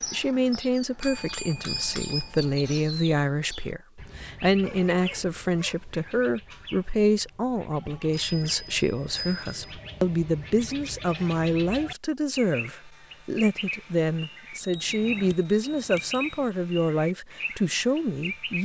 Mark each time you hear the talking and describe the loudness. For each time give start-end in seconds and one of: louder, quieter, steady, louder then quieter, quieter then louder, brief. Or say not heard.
0.1-18.6 steady.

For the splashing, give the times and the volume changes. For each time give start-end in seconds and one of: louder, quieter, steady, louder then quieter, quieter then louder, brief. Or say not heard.
not heard.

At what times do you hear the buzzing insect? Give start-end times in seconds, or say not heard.
not heard.